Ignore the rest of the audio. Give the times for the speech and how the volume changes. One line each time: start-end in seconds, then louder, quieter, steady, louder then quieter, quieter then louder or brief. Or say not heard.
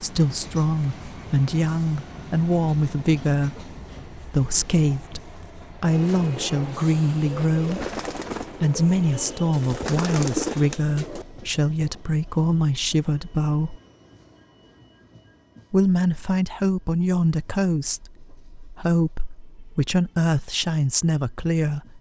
0.0-13.8 steady
15.7-21.9 steady.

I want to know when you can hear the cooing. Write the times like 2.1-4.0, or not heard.
5.8-11.2.